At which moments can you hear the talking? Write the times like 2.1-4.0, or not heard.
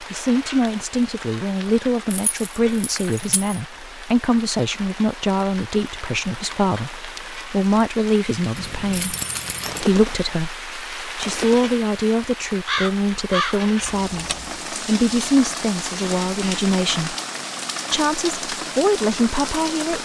0.0-9.2, 9.8-17.1, 17.9-20.0.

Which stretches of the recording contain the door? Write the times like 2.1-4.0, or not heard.
not heard.